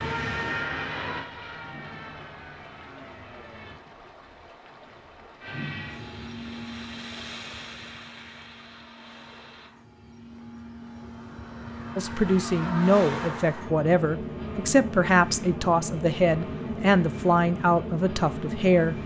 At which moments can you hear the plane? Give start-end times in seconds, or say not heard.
0.0-3.8, 5.4-19.0.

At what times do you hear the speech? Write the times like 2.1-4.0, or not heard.
11.9-19.0.